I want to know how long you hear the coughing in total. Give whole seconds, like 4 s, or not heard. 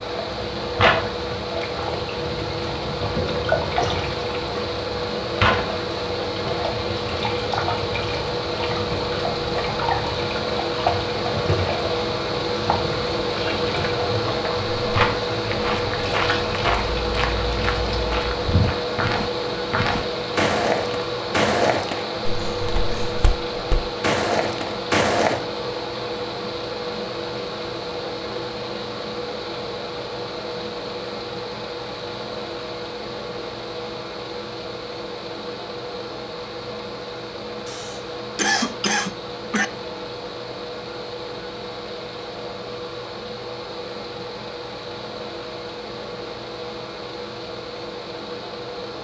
4 s.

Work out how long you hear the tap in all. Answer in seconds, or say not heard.
18 s.